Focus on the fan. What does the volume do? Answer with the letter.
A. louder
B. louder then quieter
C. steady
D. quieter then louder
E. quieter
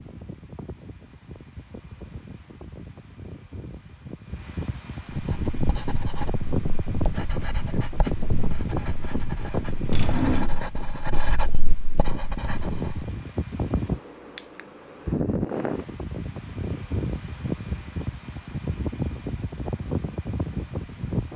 A.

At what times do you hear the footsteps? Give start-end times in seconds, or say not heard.
not heard.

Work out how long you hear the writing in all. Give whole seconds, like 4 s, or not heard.
8 s.